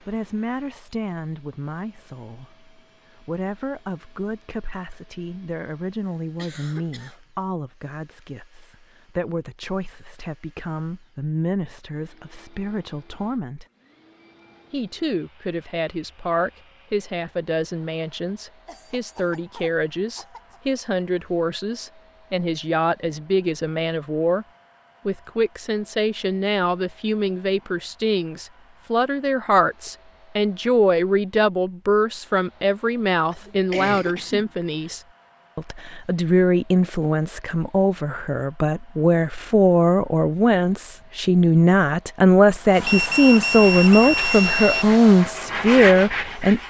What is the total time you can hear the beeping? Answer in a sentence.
The beeping can be heard for 2 seconds in total.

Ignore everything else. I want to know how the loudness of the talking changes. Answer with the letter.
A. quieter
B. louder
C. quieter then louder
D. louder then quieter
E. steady
B.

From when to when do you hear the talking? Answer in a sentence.
The talking can be heard from 0.0 to 13.7 s, from 14.7 to 24.4 s and from 25.1 to 46.6 s.